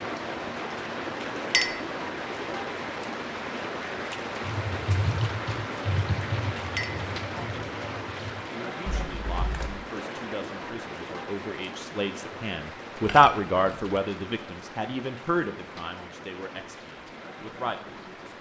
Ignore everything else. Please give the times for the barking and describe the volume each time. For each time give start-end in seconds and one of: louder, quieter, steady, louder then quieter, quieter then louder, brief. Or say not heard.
not heard.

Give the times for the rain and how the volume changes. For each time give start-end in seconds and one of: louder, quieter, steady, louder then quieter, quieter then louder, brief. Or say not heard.
0.0-18.3 quieter.